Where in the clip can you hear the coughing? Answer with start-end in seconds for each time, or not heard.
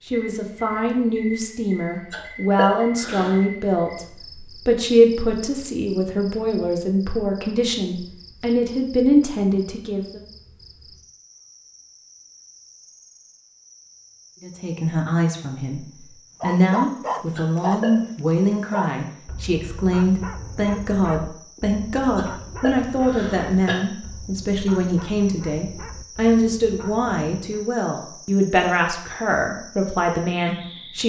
2.1-3.4, 17.4-17.9, 22.1-23.8.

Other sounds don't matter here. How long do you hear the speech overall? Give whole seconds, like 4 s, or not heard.
27 s.